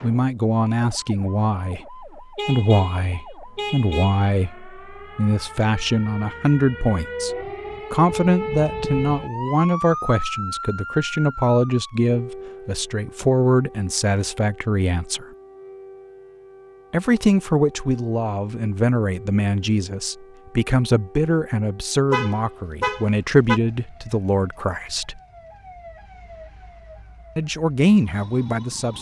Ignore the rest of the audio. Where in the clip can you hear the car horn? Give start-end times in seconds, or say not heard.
2.4-4.3, 22.1-23.6.